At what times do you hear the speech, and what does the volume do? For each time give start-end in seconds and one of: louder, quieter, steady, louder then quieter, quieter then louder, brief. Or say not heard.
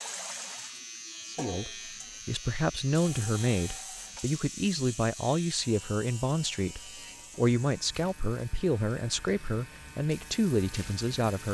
1.2-11.4 steady.